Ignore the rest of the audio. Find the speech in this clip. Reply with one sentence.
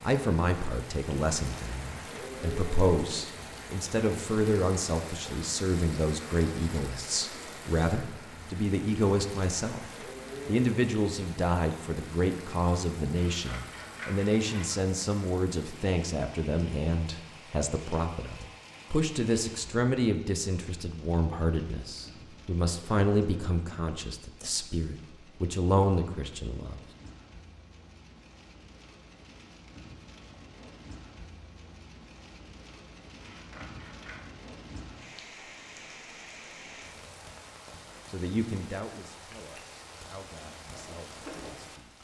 The speech can be heard from 0.0 to 9.8 s, from 10.4 to 26.8 s and from 38.0 to 41.9 s.